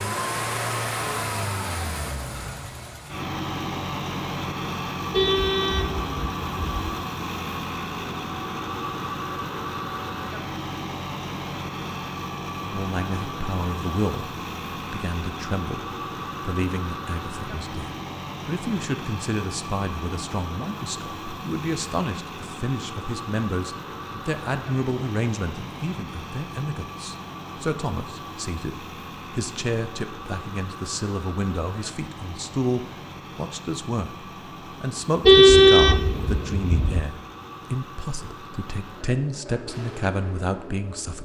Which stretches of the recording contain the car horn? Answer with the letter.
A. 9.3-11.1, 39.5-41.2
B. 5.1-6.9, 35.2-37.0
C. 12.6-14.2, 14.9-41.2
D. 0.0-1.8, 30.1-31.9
B.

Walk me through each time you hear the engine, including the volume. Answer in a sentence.
The engine can be heard from 0.0 to 41.2 s, getting quieter.